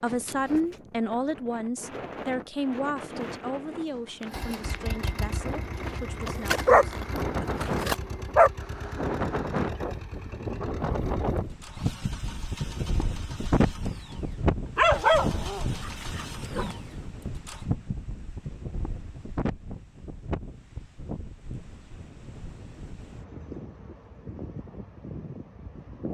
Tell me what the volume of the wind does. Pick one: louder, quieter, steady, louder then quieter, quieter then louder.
louder then quieter.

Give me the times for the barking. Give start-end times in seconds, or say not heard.
6.2-8.5, 14.8-16.8.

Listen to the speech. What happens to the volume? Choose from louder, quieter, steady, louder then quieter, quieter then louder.
quieter.